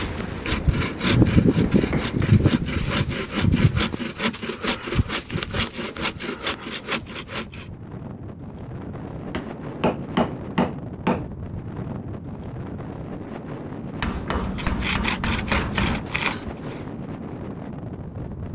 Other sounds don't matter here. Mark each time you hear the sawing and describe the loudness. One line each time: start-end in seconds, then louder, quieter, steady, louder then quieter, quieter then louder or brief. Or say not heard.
0.0-7.7 quieter
14.4-16.9 brief.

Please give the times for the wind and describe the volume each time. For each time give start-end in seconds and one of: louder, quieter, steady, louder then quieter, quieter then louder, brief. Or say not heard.
0.0-18.5 quieter then louder.